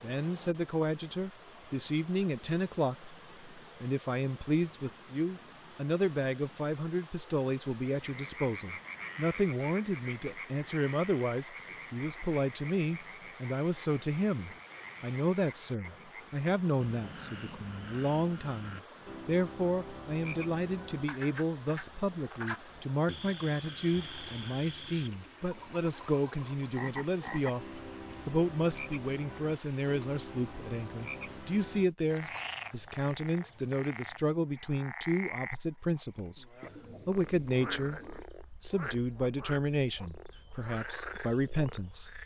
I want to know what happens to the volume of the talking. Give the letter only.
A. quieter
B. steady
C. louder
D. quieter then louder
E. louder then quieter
B.